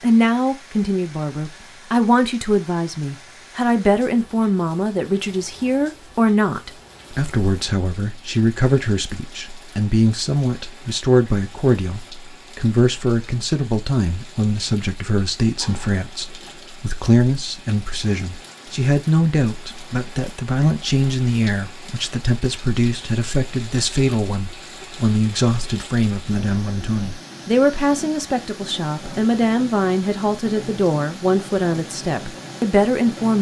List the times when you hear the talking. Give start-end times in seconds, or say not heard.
0.0-33.3.